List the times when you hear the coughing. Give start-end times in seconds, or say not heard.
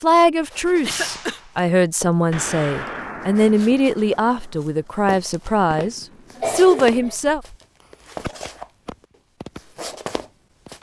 0.8-1.4, 6.3-7.2.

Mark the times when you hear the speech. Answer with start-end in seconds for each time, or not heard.
0.0-7.4.